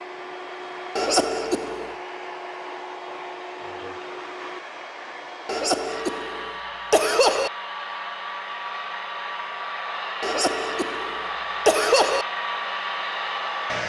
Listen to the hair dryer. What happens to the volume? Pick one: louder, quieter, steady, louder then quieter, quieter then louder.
louder.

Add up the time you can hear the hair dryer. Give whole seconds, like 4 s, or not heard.
14 s.